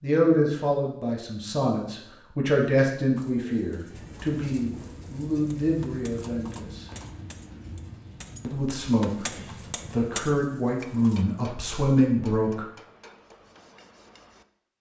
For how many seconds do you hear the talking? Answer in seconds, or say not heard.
11 s.